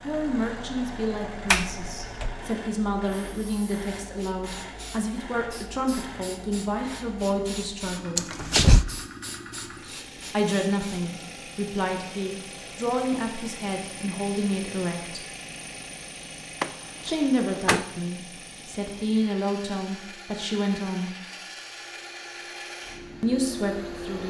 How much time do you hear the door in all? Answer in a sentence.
You can hear the door for 3 seconds altogether.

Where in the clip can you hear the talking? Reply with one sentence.
The talking can be heard from 0.0 to 8.2 s, from 10.3 to 15.2 s, from 17.0 to 21.1 s and from 23.2 to 24.2 s.